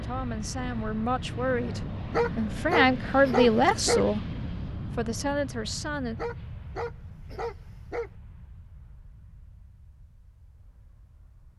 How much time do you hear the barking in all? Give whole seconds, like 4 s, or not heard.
4 s.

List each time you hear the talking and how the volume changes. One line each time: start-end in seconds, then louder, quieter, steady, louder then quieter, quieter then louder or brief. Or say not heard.
0.0-6.2 louder then quieter.